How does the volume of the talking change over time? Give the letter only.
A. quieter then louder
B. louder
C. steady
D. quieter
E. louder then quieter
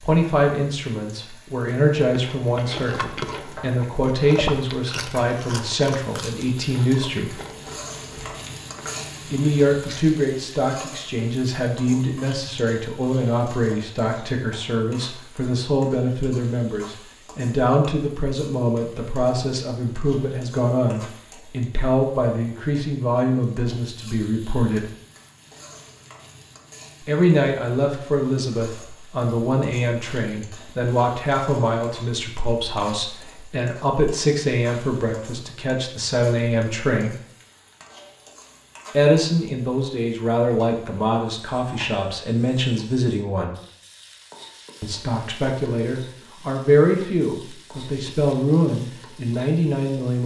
C.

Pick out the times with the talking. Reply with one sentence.
You can hear the talking from 0.0 to 7.3 s, from 9.3 to 24.9 s, from 27.0 to 37.1 s, from 38.9 to 43.5 s and from 44.8 to 50.2 s.